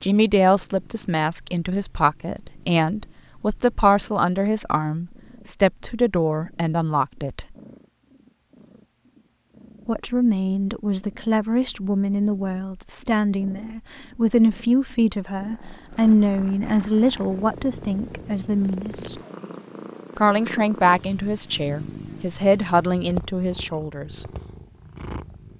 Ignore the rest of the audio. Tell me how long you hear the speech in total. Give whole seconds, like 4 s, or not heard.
21 s.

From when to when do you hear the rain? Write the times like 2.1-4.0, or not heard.
not heard.